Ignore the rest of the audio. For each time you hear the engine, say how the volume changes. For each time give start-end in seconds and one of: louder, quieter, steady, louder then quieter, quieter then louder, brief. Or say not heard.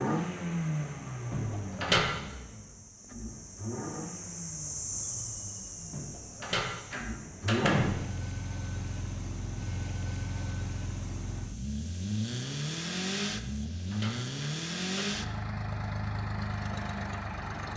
0.0-17.7 quieter then louder.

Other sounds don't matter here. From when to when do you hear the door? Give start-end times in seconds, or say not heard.
1.3-2.1, 5.9-7.9, 13.4-15.1.